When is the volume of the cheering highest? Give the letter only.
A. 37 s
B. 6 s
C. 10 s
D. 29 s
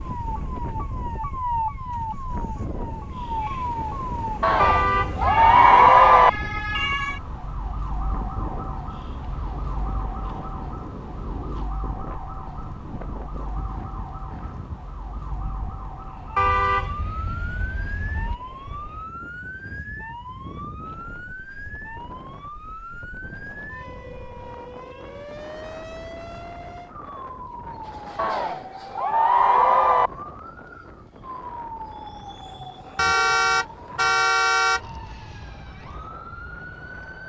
B.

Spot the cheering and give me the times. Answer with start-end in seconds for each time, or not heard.
4.4-6.3, 28.1-30.1.